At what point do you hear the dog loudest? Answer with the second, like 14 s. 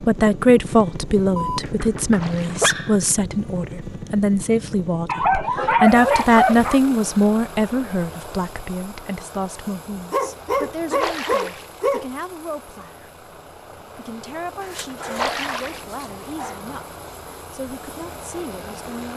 6 s.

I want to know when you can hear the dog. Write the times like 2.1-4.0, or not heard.
1.4-3.0, 5.0-6.8, 10.1-12.1, 14.6-16.6.